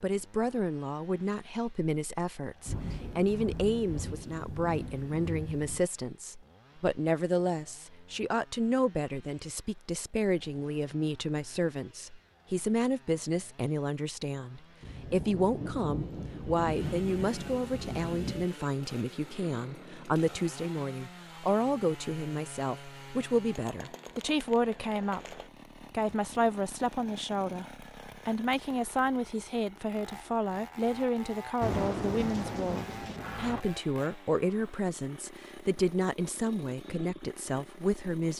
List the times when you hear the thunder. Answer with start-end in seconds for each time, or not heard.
2.6-5.8, 14.8-18.5, 31.6-33.6.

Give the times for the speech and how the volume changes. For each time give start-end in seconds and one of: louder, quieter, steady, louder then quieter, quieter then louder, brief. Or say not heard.
0.0-38.3 steady.